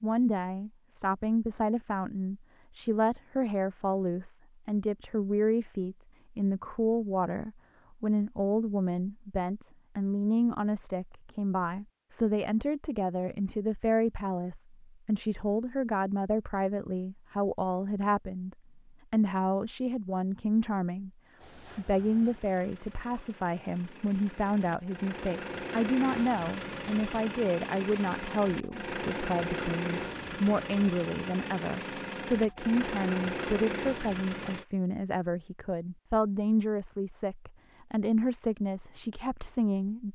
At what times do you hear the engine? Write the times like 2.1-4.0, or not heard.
21.4-34.6.